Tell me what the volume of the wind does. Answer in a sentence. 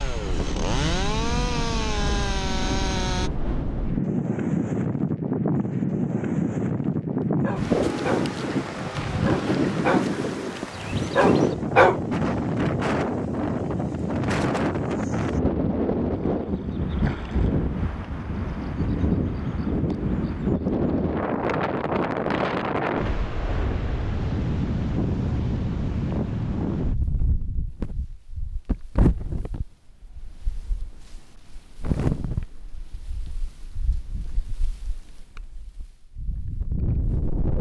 The volume of the wind goes down.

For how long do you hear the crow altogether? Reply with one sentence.
The crow can't be heard in this clip.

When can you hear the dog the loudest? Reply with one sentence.
The loudest moment of the dog is at 12 seconds.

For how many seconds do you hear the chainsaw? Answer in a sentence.
You can hear the chainsaw for 3 seconds altogether.